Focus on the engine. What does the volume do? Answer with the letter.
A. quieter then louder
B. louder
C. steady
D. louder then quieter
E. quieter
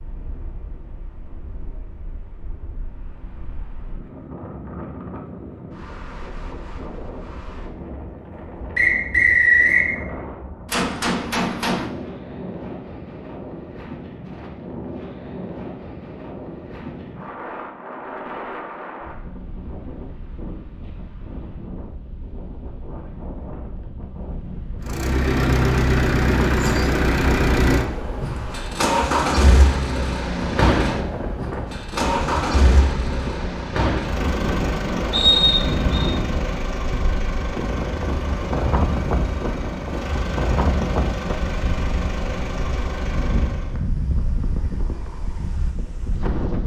E.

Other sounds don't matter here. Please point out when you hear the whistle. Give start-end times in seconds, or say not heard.
8.8-9.8, 35.1-36.1.